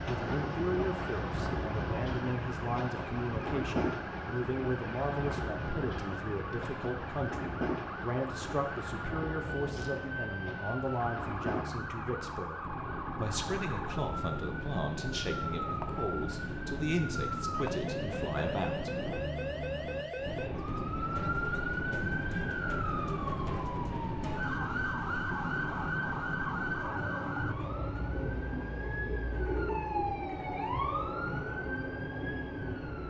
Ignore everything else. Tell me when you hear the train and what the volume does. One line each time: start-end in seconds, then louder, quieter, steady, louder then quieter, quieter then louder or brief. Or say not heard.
0.0-33.0 steady.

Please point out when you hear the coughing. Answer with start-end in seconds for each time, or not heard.
not heard.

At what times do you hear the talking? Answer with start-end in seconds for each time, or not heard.
0.1-18.9.